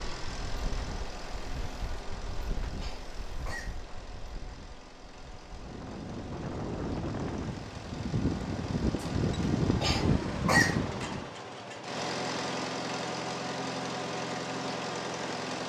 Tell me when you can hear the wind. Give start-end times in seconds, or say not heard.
0.2-11.3.